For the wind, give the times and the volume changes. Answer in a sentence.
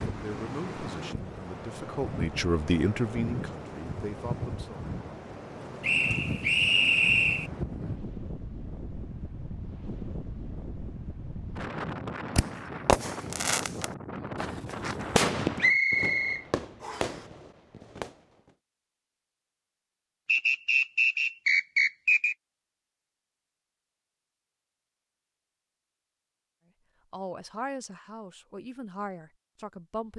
The wind can be heard from 0.0 to 15.8 s, at a steady volume.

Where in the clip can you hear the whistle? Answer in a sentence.
You can hear the whistle from 5.8 to 7.5 s, from 15.6 to 17.2 s and from 20.2 to 22.4 s.